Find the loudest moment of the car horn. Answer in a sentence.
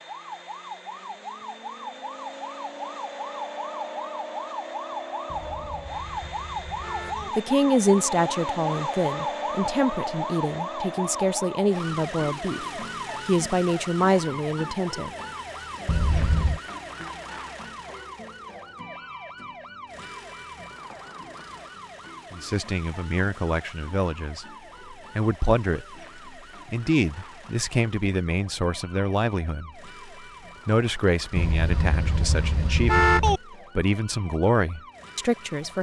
The loudest moment of the car horn is at 33 seconds.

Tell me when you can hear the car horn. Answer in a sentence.
The car horn can be heard from 5.3 to 7.3 s, from 15.8 to 16.6 s and from 31.4 to 33.4 s.